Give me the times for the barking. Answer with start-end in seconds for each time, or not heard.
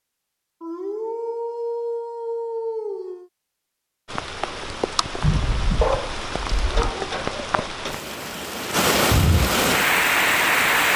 0.6-3.3, 5.8-7.7.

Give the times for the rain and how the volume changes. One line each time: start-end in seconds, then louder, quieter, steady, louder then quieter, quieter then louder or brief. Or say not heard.
4.0-10.9 louder.